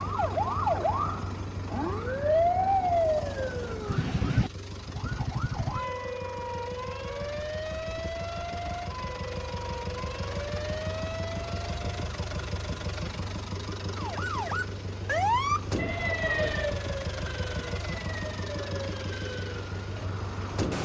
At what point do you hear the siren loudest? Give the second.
3 s.